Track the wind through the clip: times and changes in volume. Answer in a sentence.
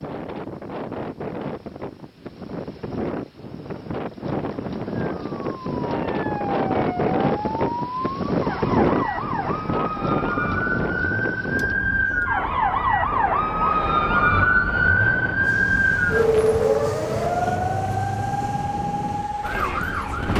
You can hear the wind from 0.0 to 20.3 s, getting louder then quieter.